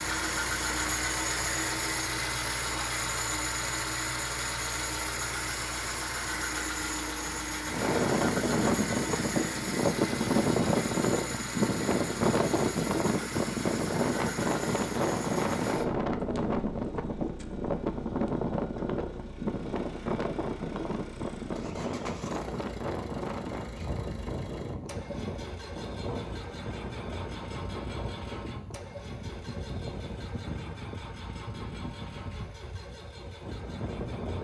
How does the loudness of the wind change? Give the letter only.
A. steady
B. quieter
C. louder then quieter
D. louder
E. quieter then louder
B.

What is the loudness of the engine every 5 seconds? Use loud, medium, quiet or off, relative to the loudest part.
loud, loud, medium, quiet, quiet, quiet, quiet.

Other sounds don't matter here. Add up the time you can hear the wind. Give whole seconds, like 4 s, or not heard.
27 s.